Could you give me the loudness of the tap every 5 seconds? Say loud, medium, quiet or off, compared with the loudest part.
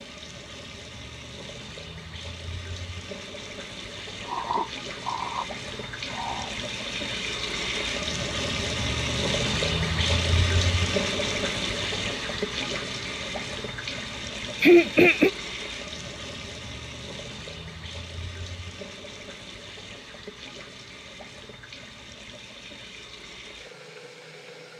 medium, loud, loud, medium, quiet.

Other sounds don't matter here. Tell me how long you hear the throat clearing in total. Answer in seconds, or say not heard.
3 s.